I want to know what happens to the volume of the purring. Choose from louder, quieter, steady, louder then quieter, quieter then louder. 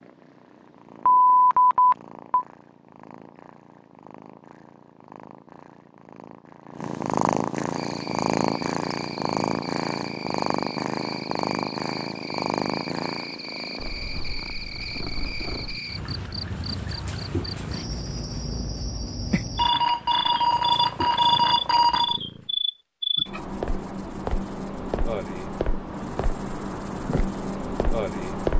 louder then quieter.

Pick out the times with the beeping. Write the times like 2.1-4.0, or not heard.
1.1-2.5, 19.6-22.1.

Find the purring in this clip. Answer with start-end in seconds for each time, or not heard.
0.0-22.6.